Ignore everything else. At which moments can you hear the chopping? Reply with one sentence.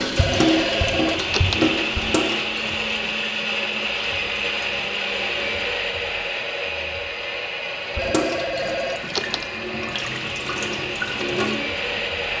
You can't hear the chopping here.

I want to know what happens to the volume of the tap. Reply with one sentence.
The volume of the tap goes down, then up.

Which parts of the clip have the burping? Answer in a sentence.
You can't hear the burping here.